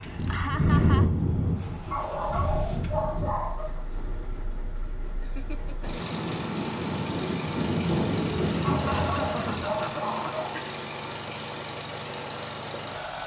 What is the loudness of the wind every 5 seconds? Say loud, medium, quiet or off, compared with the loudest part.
loud, loud, off.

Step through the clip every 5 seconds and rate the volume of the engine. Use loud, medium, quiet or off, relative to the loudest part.
quiet, loud, loud.